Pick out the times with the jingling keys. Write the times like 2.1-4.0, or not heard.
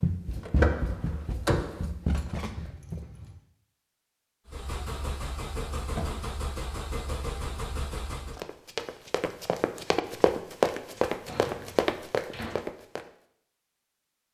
2.1-3.4.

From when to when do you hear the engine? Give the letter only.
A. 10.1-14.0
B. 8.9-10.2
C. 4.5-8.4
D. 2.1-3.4
C.